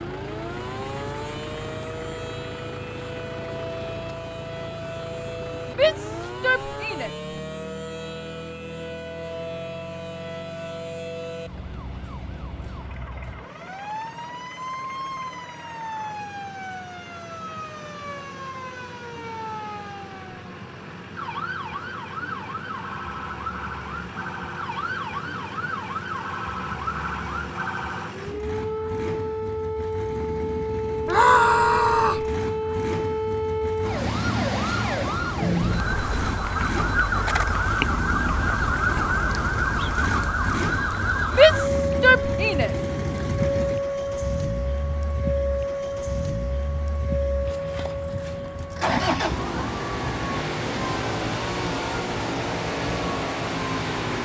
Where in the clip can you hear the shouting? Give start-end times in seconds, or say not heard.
5.8-7.1, 31.1-32.2, 41.4-42.7.